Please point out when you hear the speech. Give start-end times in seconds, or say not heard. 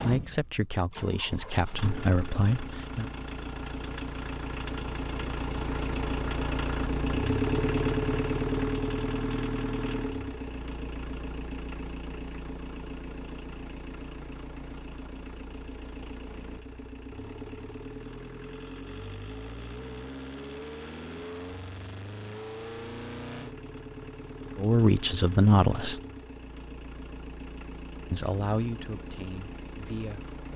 0.0-3.0, 24.6-26.0, 28.1-30.3.